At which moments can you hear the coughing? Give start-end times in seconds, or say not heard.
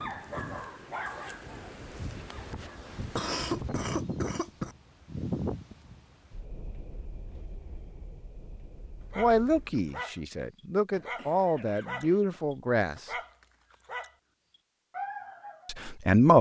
3.1-4.8, 10.9-12.4.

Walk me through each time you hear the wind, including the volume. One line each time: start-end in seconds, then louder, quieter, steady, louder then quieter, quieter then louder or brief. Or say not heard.
0.0-9.8 louder then quieter.